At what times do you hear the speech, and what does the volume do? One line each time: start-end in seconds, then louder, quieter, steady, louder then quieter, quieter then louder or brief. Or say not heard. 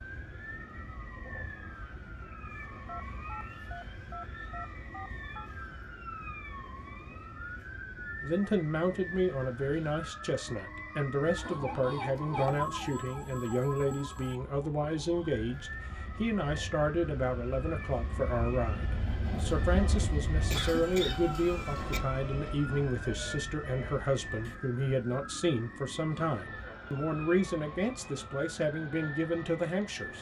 8.2-30.1 steady.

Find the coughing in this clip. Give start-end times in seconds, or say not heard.
20.5-22.0.